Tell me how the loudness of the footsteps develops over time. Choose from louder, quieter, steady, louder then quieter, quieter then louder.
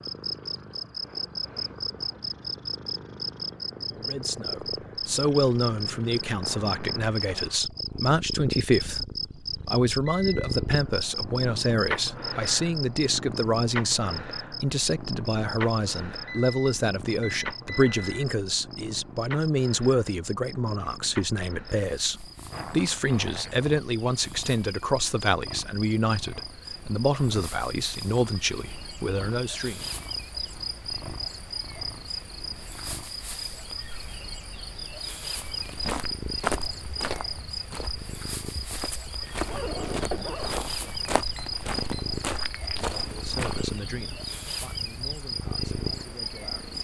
quieter then louder.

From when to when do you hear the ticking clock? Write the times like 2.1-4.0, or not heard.
not heard.